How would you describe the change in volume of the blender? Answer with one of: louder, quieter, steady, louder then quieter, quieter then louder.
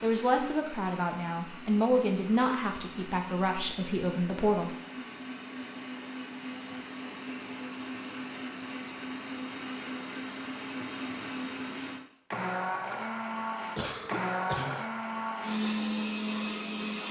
louder.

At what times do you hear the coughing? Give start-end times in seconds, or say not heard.
2.3-2.8, 13.8-14.8.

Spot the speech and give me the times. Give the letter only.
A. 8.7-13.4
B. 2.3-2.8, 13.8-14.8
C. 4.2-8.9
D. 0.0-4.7
D.